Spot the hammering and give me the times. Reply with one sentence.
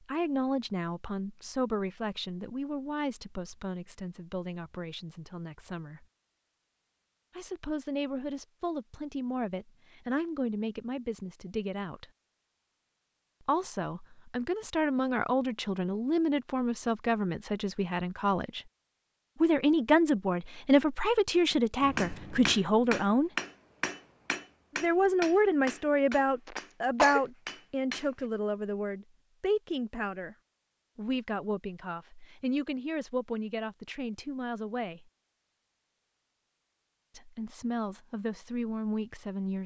The hammering can be heard from 21.5 to 28.2 s.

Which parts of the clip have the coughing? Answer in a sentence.
You can hear the coughing from 26.4 to 27.2 s.